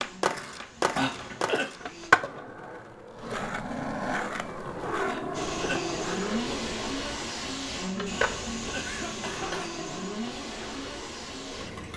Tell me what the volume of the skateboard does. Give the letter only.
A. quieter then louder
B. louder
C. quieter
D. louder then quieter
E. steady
C.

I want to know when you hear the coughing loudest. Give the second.
1 s.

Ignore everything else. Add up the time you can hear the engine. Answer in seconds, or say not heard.
9 s.